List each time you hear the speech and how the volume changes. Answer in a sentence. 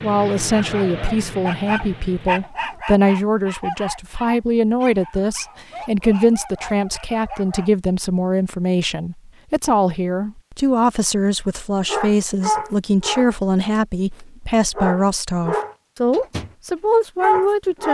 The speech can be heard from 0.0 to 17.8 s, at a steady volume.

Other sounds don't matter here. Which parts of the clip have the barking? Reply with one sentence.
You can hear the barking from 0.5 to 7.7 s, from 11.8 to 16.5 s and from 17.2 to 17.8 s.